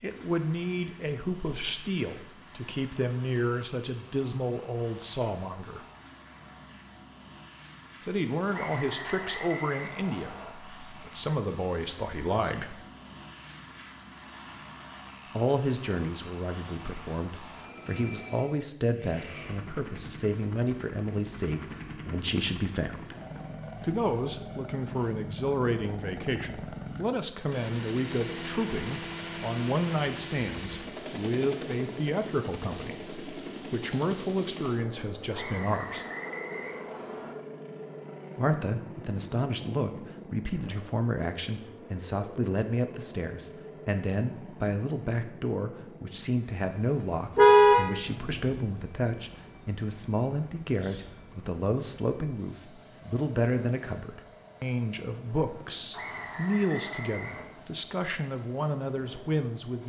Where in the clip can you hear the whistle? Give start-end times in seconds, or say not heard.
8.5-10.5, 35.3-37.4, 55.9-57.5.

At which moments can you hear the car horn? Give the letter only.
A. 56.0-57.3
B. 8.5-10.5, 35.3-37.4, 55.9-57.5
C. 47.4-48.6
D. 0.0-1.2
C.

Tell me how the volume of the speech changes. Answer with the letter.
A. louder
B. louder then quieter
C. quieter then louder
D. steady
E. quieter
D.